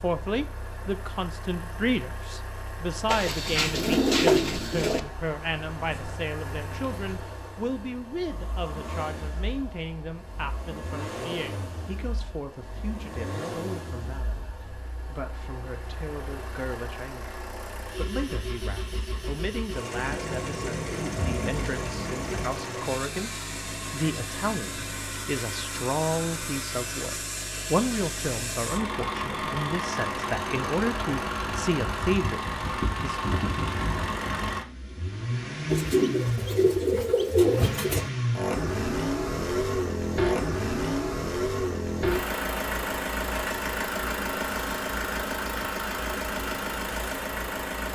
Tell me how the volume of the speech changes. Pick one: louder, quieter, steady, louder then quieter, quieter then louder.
quieter then louder.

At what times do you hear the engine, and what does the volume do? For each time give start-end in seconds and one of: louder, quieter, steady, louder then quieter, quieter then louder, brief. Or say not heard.
0.0-47.9 louder.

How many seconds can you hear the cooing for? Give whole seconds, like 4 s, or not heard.
7 s.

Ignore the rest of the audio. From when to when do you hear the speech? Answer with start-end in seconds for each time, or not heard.
0.0-33.4.